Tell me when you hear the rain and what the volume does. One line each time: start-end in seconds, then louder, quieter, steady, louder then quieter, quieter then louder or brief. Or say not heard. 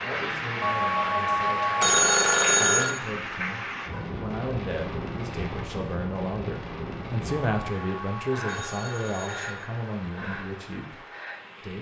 0.0-11.7 quieter.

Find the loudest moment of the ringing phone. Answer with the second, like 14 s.
2 s.